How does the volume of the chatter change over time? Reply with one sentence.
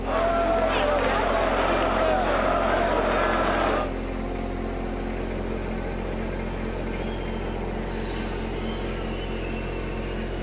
The loudness of the chatter goes down.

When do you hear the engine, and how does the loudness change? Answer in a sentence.
You can hear the engine from 0.0 to 10.3 s, at a steady volume.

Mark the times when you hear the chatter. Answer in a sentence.
You can hear the chatter from 0.0 to 10.3 s.